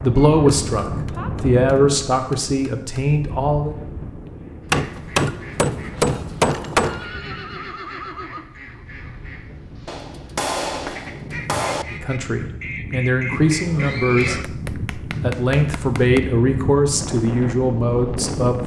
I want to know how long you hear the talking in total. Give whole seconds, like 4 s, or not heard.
10 s.